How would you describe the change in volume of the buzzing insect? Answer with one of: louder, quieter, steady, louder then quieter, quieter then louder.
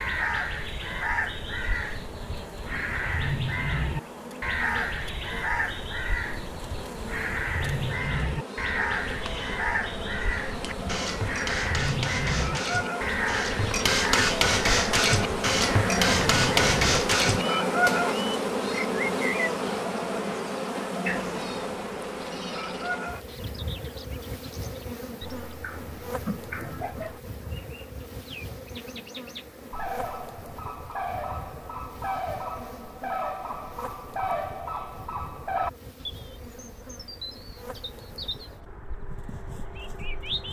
louder then quieter.